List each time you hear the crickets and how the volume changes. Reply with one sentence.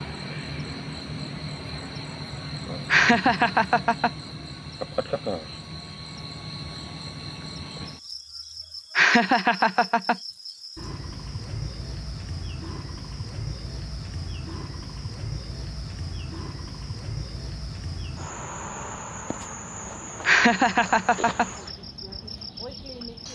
The crickets can be heard from 0.0 to 23.3 s, at a steady volume.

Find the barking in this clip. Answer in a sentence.
The barking can't be heard in this clip.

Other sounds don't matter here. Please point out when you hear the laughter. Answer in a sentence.
You can hear the laughter from 2.9 to 4.1 s, from 8.9 to 10.2 s and from 20.2 to 21.5 s.